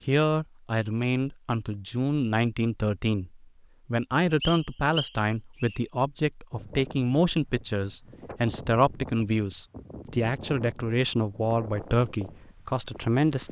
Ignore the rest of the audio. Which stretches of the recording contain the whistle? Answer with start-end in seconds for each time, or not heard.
4.4-5.8.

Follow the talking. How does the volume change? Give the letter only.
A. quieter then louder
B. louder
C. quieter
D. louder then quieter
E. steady
E.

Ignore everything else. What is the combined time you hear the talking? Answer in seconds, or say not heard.
13 s.